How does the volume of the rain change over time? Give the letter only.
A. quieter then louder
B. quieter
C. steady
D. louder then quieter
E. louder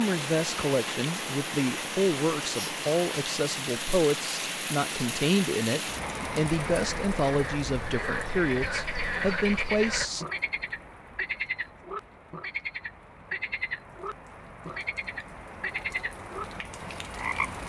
A.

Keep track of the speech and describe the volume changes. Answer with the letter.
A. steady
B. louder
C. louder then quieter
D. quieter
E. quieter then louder
A.